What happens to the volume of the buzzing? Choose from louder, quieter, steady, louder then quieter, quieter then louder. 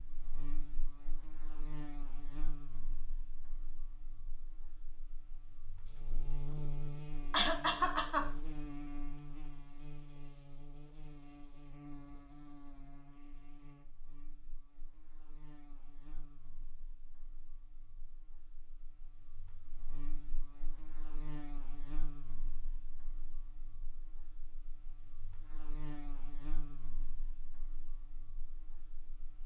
louder then quieter.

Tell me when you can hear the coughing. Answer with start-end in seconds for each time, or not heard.
7.3-8.2.